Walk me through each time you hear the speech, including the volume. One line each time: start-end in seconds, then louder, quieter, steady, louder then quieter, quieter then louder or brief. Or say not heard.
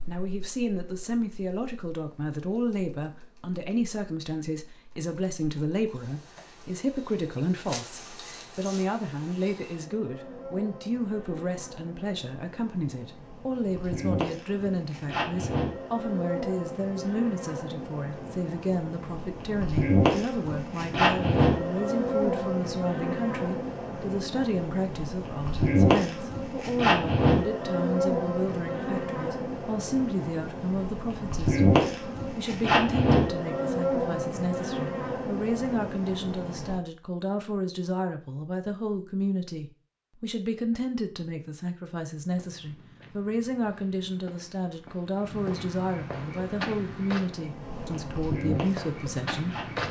0.1-49.8 steady.